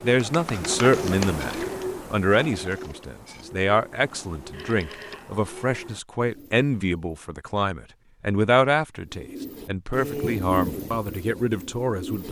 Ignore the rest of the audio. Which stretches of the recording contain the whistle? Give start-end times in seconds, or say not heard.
not heard.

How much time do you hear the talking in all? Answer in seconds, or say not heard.
12 s.